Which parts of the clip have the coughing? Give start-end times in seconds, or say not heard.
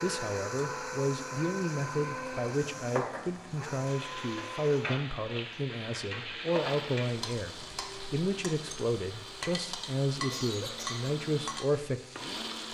10.3-11.1.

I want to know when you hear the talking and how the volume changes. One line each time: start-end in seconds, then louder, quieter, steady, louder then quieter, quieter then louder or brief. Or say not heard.
0.0-12.0 steady.